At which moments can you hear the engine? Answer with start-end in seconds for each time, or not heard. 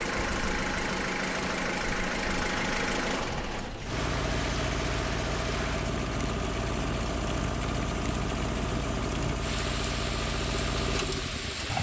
0.0-11.7.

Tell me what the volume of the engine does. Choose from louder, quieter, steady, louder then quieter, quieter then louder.
steady.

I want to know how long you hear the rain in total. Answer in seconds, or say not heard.
12 s.